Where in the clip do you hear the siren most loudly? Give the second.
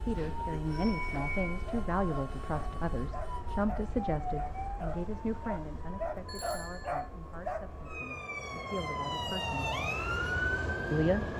10 s.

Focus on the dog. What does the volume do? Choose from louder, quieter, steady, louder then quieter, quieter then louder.
louder.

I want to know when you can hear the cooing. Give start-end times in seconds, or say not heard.
not heard.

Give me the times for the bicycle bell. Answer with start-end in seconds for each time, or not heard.
0.1-1.6, 6.2-7.0.